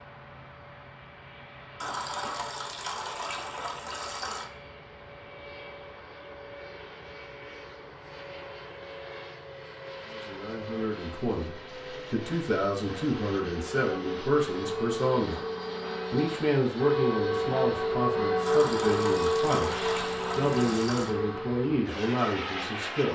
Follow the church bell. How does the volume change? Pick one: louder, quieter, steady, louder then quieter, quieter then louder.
louder then quieter.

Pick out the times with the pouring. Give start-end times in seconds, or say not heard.
1.8-4.5, 18.4-21.1.